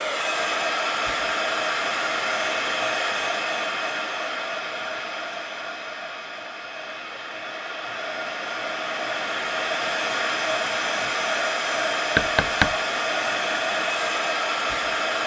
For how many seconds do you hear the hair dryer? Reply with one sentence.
The hair dryer can be heard for 15 seconds in total.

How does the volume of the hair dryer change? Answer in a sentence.
The loudness of the hair dryer goes down, then up.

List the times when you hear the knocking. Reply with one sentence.
The knocking can be heard from 12.2 to 12.8 s.